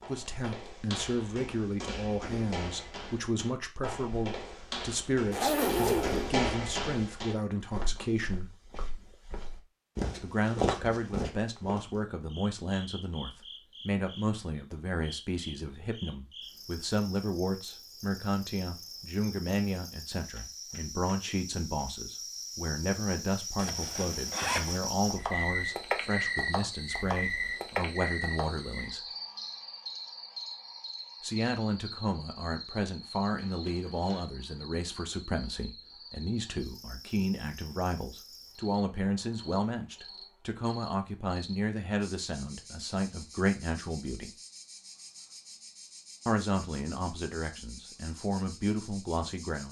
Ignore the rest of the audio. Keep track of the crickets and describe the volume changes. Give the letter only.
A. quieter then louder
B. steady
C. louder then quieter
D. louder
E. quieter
C.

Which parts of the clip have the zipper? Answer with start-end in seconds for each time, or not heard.
5.3-6.2, 23.6-24.8, 33.4-34.2.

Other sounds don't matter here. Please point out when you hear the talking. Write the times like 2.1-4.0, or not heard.
0.1-8.5, 10.2-29.0, 31.2-44.3, 46.2-49.6.